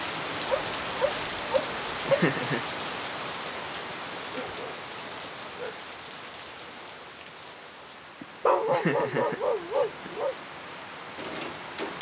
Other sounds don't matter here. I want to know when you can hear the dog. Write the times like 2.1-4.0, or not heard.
0.5-2.2, 4.3-5.8, 8.4-10.3.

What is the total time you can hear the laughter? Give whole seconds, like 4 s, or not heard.
3 s.